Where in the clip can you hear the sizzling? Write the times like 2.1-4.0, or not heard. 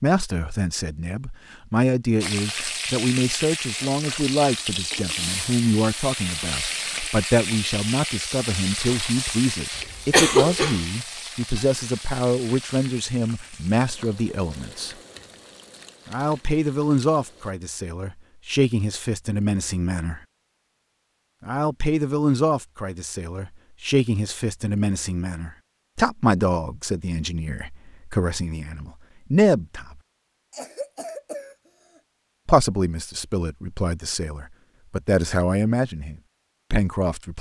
2.2-17.6.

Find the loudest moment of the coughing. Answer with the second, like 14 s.
10 s.